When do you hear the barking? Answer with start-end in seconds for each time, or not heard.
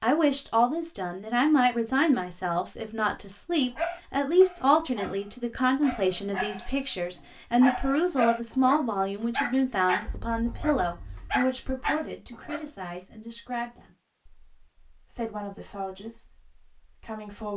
3.8-6.8, 7.6-12.7.